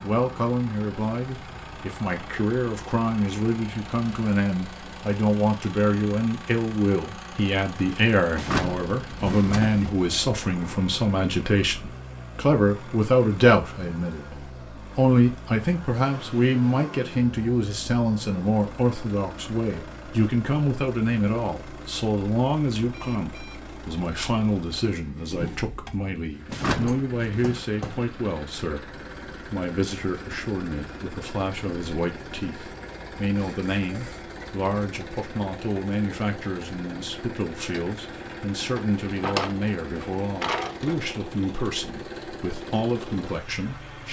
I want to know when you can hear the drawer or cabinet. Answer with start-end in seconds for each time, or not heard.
8.3-9.9, 26.4-27.4, 39.0-39.5, 40.4-41.0.